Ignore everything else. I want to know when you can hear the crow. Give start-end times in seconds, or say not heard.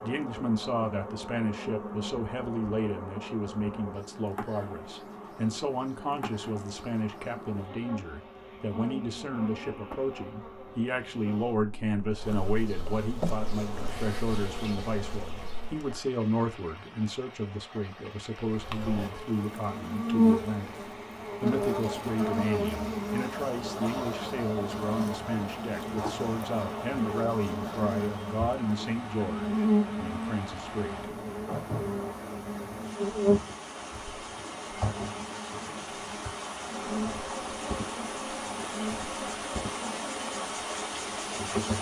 not heard.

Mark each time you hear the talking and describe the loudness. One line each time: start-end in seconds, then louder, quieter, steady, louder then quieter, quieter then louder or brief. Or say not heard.
0.0-31.1 steady.